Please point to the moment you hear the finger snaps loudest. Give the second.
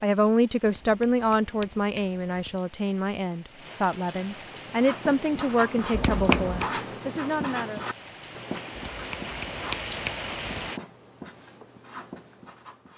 6 s.